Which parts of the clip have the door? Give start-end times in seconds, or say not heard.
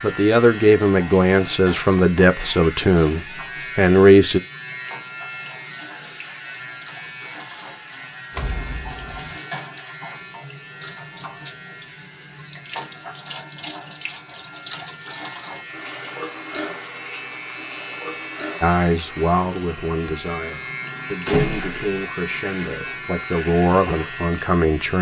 8.3-9.4, 21.2-21.9.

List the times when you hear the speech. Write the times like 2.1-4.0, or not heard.
0.0-4.4, 18.6-24.9.